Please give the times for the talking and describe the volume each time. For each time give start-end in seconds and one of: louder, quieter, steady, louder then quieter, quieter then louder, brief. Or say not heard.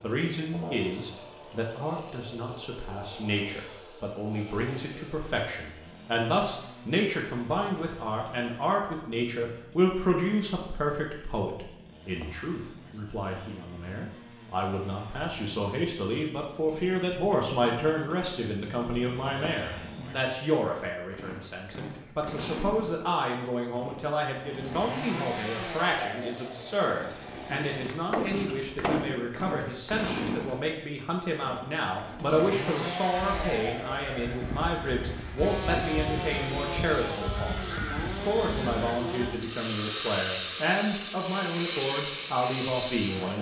0.0-43.3 steady.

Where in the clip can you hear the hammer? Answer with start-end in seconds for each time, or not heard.
28.1-29.4.